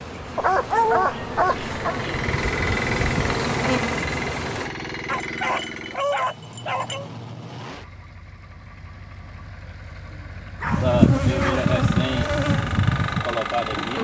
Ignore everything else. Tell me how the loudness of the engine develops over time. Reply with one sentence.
The loudness of the engine goes down, then up.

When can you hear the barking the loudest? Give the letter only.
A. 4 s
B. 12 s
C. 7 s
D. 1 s
D.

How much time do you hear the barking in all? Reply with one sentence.
The barking can be heard for 5 seconds in total.